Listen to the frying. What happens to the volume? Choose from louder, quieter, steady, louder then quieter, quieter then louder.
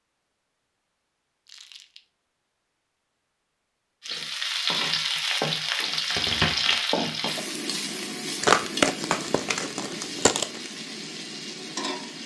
quieter.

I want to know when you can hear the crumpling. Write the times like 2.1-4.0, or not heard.
1.4-2.0, 8.4-10.6.